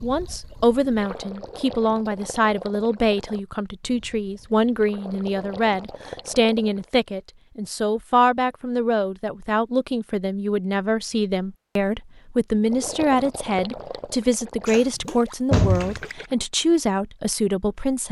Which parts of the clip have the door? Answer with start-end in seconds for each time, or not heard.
14.7-16.1.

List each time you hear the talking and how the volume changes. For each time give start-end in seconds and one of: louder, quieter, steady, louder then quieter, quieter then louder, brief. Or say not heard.
0.0-18.0 steady.